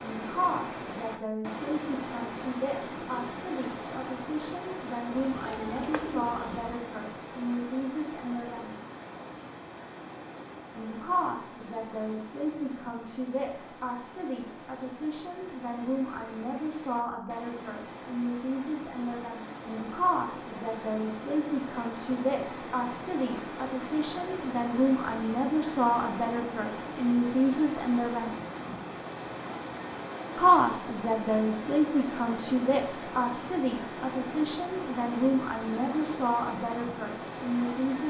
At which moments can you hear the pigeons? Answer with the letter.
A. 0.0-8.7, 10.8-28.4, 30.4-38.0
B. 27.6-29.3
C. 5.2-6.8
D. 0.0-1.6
C.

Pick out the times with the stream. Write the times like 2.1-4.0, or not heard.
0.0-38.0.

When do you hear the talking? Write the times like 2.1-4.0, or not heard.
0.0-8.7, 10.8-28.4, 30.4-38.0.